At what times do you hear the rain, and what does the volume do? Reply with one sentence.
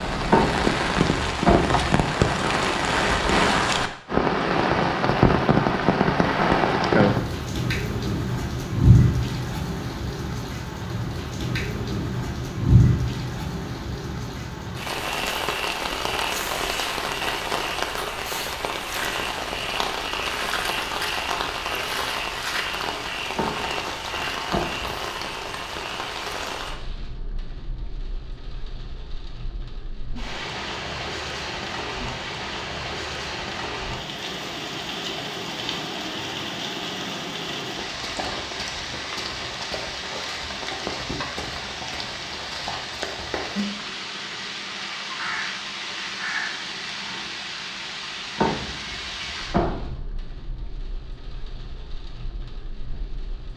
The rain can be heard from 0.0 to 53.5 s, getting quieter.